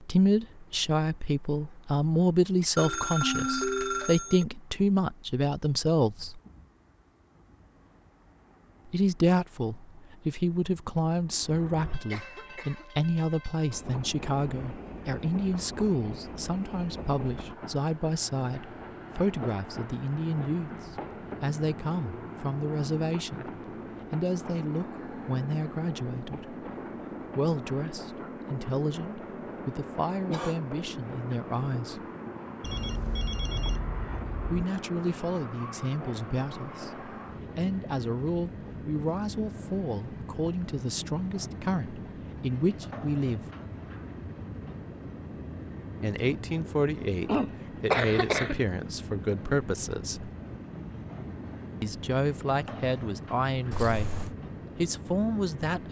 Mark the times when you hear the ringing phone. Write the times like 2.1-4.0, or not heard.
2.8-4.5, 32.6-34.6, 53.7-54.3.